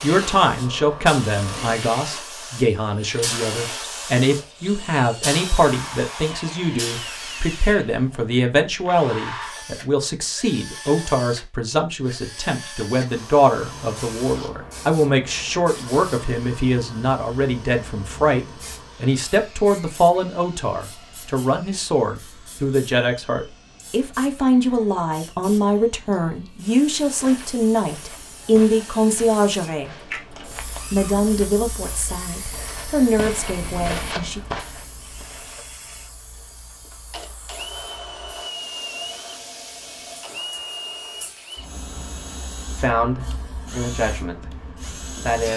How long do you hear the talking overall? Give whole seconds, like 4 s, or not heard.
36 s.